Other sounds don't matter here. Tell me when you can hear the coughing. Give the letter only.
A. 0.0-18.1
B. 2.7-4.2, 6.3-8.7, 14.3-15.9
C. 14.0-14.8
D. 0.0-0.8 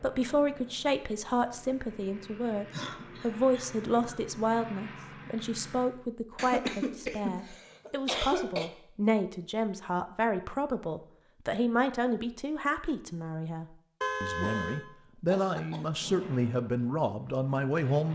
B.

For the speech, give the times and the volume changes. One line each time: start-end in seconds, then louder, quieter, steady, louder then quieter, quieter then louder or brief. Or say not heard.
0.0-18.1 steady.